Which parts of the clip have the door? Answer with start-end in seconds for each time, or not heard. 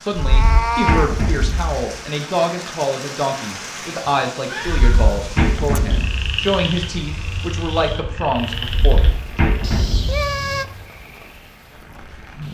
0.1-1.8, 4.7-6.2, 8.7-10.3.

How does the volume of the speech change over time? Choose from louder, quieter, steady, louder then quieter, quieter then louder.
steady.